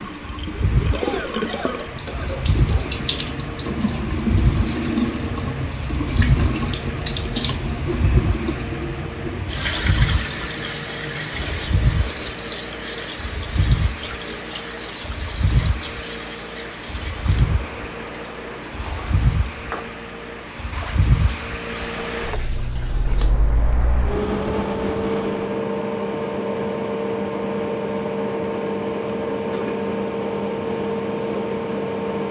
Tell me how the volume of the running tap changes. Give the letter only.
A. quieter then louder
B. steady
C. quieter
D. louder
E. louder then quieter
C.